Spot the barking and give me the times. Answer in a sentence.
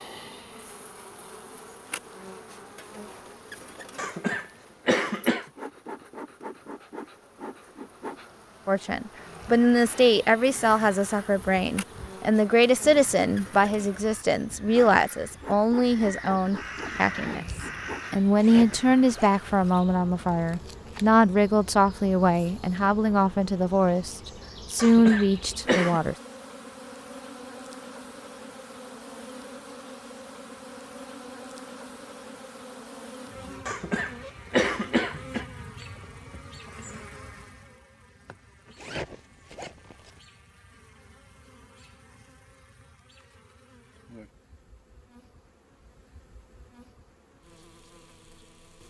You can't hear the barking here.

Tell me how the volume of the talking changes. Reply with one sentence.
The loudness of the talking stays about the same.